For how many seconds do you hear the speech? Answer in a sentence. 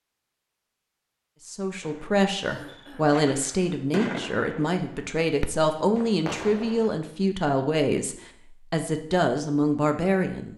You can hear the speech for 9 seconds altogether.